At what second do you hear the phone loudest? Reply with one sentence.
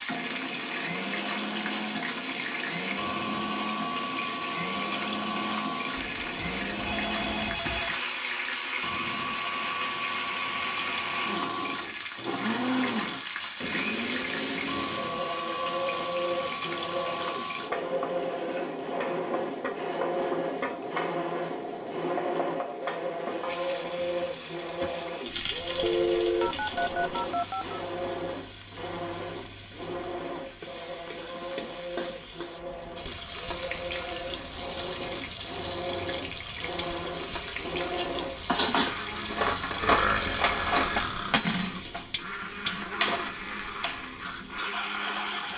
The volume of the phone peaks at 26 seconds.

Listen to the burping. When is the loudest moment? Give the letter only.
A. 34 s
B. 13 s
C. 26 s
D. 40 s
D.